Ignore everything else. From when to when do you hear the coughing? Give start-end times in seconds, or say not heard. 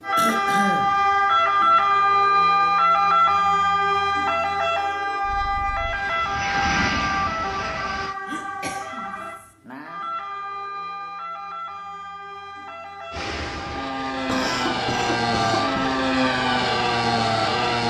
0.1-1.0, 8.2-9.5, 14.2-15.8.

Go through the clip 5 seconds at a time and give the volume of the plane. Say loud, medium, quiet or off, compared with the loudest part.
off, medium, medium, loud.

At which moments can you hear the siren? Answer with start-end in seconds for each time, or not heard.
0.0-17.8.